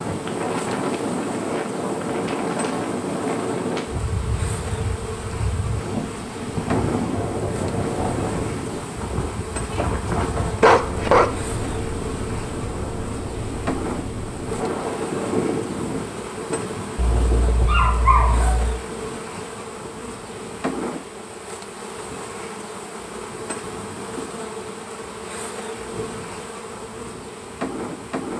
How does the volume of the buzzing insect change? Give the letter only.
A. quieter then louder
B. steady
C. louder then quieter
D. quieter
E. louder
B.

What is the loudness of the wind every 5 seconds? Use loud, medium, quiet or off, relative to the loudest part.
loud, loud, loud, loud, quiet, quiet.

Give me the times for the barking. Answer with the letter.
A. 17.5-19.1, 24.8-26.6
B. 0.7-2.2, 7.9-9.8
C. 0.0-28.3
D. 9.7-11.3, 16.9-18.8
D.